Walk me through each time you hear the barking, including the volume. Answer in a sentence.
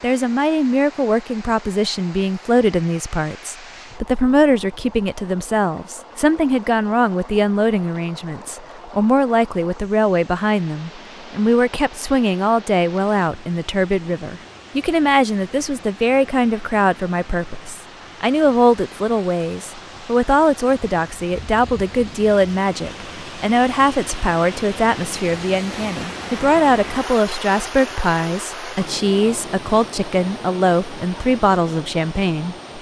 You can't hear the barking here.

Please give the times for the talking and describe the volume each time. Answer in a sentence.
The talking can be heard from 0.0 to 32.5 s, at a steady volume.